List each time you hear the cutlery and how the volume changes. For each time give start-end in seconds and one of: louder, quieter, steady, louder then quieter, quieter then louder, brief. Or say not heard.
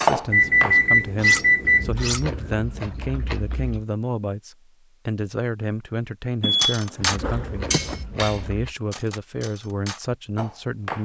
0.0-2.2 brief
6.5-10.9 quieter then louder.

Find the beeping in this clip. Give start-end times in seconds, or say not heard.
0.3-1.9, 6.4-8.0.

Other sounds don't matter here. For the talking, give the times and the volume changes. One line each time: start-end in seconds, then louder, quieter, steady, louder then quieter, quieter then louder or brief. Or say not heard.
0.0-10.9 steady.